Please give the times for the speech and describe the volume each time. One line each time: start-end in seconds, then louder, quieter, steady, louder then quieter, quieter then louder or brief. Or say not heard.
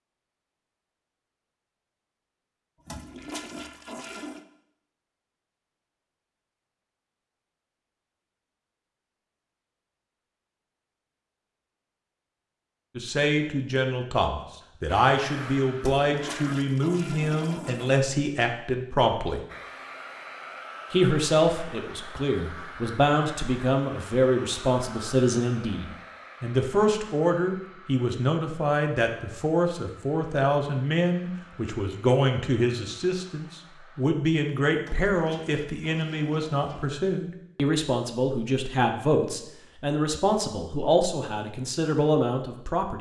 12.9-19.4 steady
20.9-42.9 steady.